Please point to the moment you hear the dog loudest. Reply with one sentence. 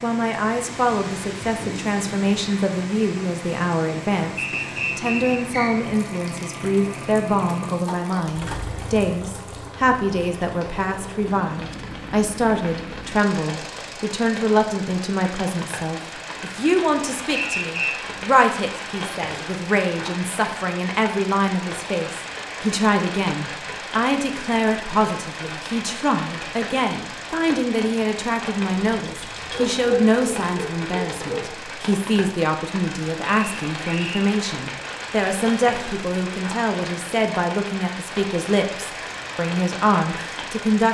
The loudest moment of the dog is at 30 seconds.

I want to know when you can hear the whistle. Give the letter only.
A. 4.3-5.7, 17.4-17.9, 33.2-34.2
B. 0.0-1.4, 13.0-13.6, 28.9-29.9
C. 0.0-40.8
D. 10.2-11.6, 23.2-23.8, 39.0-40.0
A.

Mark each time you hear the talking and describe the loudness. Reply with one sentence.
You can hear the talking from 0.0 to 40.8 s, at a steady volume.